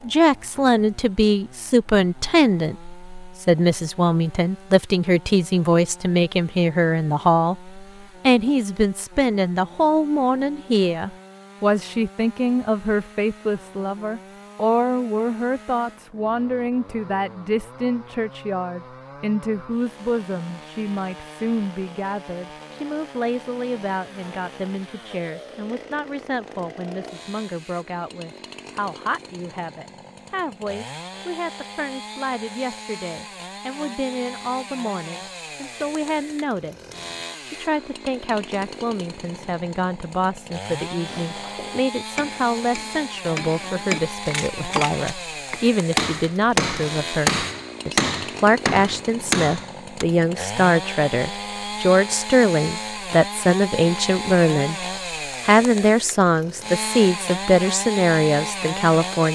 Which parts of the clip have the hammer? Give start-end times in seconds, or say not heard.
41.0-50.0.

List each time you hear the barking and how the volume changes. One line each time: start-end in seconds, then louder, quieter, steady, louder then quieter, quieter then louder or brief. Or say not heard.
not heard.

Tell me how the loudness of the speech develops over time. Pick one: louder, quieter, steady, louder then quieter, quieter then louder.
quieter then louder.